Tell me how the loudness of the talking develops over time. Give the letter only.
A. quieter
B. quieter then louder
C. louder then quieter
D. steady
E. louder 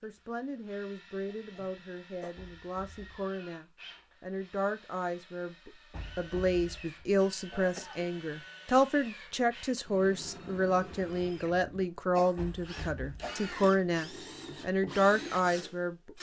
E.